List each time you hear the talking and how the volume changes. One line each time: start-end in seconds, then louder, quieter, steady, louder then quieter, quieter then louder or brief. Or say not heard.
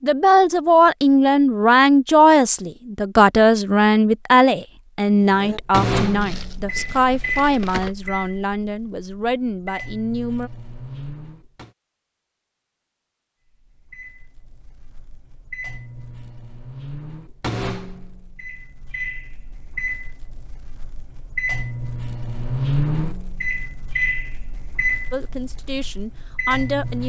0.0-10.5 quieter
25.1-27.0 brief.